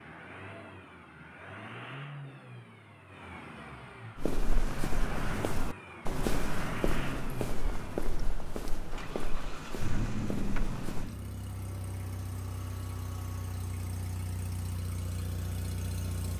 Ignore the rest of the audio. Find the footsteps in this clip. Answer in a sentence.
You can hear the footsteps from 4.2 to 11.1 s.